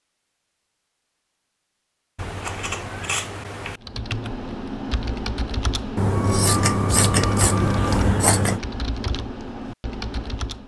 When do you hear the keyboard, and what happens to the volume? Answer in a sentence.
You can hear the keyboard from 3.8 to 10.6 s, at a steady volume.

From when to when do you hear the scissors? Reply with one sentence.
The scissors can be heard from 2.1 to 3.8 s and from 6.0 to 8.6 s.